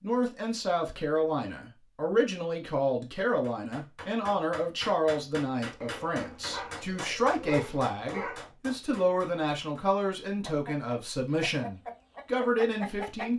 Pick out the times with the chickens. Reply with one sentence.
You can hear the chickens from 10.4 to 13.3 s.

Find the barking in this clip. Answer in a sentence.
You can hear the barking from 5.8 to 8.4 s.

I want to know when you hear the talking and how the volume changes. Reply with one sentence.
The talking can be heard from 0.0 to 13.3 s, at a steady volume.